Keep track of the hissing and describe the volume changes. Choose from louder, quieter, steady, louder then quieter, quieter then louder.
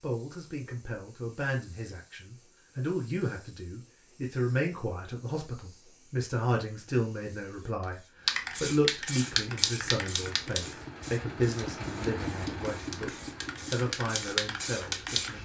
louder.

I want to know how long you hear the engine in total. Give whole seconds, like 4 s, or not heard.
6 s.